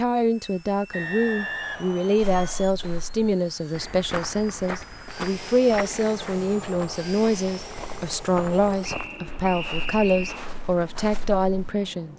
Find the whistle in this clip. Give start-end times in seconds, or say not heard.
0.9-2.6, 8.8-10.4.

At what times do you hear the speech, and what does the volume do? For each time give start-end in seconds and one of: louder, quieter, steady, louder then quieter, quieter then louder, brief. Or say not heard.
0.0-12.1 steady.